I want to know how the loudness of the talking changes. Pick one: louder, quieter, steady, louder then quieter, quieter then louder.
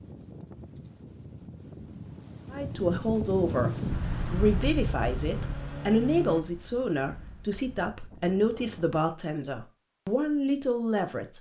steady.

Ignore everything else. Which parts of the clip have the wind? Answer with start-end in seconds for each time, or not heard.
0.0-9.0.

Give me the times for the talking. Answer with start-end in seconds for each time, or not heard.
2.5-11.3.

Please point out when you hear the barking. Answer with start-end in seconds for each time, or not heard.
not heard.